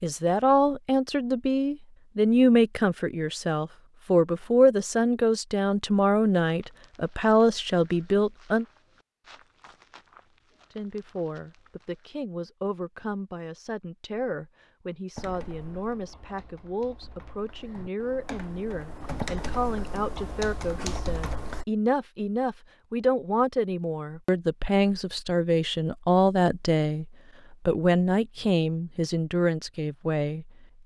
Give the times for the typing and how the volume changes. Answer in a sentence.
You can hear the typing from 15.2 to 21.6 s, getting louder.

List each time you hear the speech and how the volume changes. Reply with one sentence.
The speech can be heard from 0.0 to 8.7 s, at a steady volume; and from 10.8 to 30.8 s, getting louder.